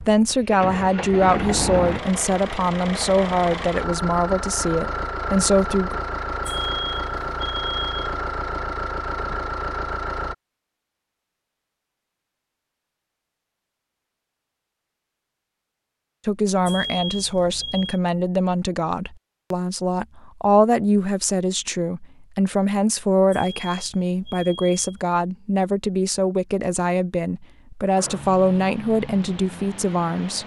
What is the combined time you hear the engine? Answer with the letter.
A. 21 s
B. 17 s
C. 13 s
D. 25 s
C.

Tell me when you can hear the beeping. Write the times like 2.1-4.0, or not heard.
6.5-8.2, 16.6-18.0, 23.3-25.1.